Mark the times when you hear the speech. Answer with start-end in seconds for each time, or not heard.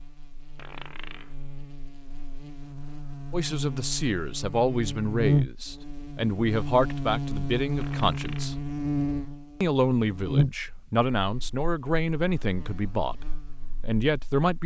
3.3-8.6, 9.6-14.6.